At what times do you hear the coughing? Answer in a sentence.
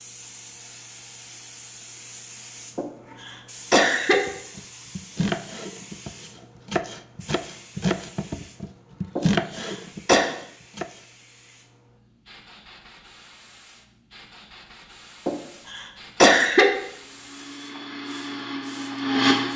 You can hear the coughing from 2.8 to 4.2 s, from 9.2 to 10.2 s and from 15.2 to 16.7 s.